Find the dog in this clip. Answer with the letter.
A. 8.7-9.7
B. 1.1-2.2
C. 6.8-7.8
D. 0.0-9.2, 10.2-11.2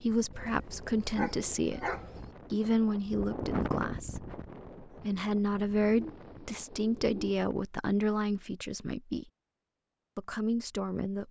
B.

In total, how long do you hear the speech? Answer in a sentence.
The speech can be heard for 10 seconds in total.